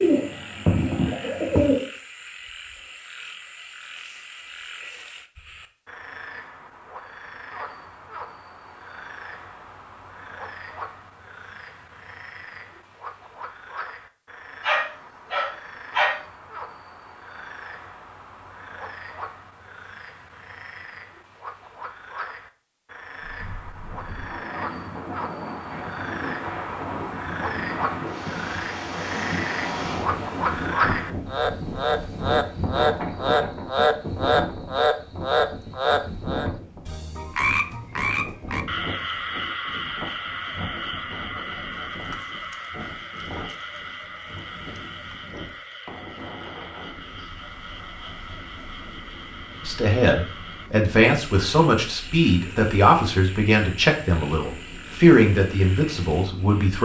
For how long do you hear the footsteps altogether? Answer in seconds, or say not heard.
not heard.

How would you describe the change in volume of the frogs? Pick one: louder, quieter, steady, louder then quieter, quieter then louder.
louder then quieter.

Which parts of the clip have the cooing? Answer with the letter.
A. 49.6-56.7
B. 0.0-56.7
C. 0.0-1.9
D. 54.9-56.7
C.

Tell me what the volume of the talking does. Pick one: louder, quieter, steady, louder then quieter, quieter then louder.
steady.